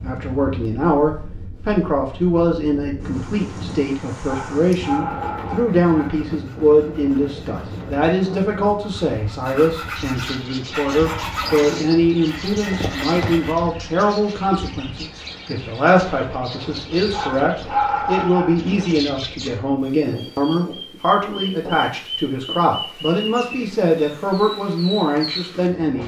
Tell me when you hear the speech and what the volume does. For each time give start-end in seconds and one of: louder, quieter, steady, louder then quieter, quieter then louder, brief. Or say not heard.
0.0-26.0 steady.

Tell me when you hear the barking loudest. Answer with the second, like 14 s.
18 s.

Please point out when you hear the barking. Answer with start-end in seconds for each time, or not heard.
4.2-6.2, 17.1-18.9.